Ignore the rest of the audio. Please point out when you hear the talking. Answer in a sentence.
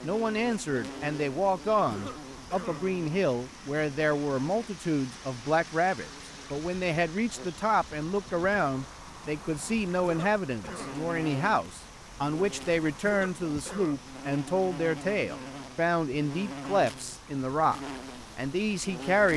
You can hear the talking from 0.0 to 19.3 s.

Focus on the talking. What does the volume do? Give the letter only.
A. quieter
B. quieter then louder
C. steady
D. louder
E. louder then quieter
C.